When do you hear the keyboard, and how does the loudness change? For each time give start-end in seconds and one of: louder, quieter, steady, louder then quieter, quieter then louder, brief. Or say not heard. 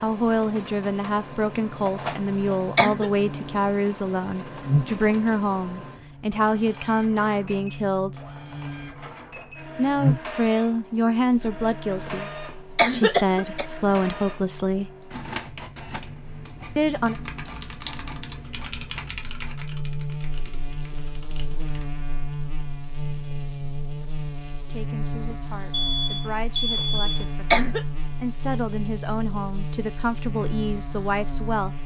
16.9-21.9 quieter.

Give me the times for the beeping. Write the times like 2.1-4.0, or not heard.
25.7-27.2.